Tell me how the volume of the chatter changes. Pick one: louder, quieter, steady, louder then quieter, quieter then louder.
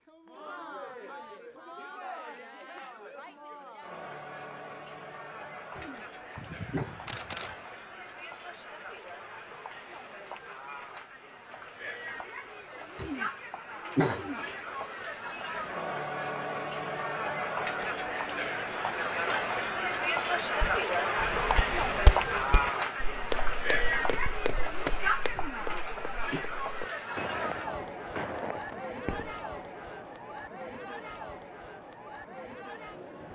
louder then quieter.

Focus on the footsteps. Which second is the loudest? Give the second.
22 s.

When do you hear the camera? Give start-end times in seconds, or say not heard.
6.3-7.7.